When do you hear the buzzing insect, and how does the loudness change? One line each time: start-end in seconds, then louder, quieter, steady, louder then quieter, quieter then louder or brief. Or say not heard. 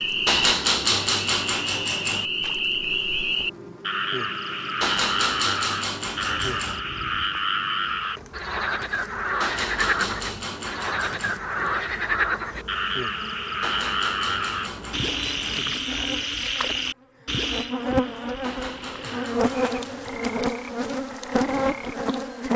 0.0-22.5 louder.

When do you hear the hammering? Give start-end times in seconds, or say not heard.
0.2-2.2, 4.8-6.8, 9.4-11.4, 13.6-15.7, 18.4-20.4.